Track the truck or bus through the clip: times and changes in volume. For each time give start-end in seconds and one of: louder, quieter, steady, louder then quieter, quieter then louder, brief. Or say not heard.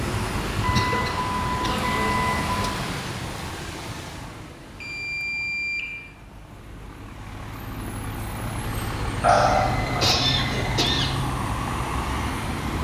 0.0-12.7 quieter then louder.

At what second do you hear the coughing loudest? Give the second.
10 s.